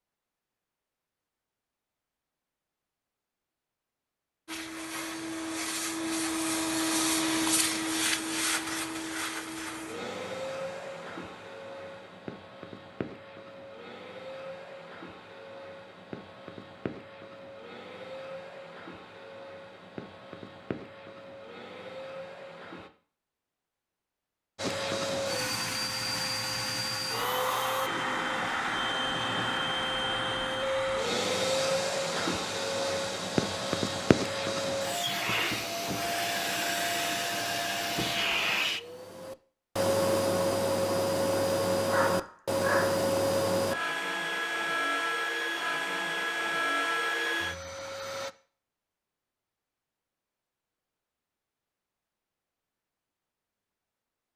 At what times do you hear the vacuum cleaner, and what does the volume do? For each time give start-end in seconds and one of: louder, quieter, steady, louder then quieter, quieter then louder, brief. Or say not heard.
4.5-22.9 quieter
24.6-48.3 steady.